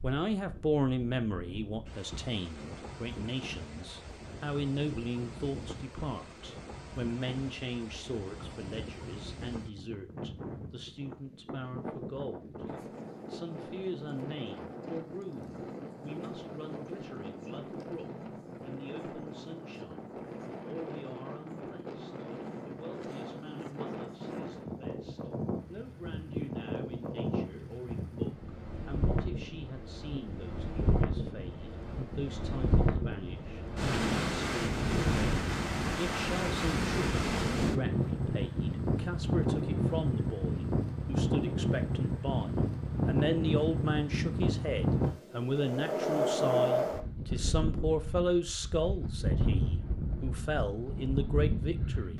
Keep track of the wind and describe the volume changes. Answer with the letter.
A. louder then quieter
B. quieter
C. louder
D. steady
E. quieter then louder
C.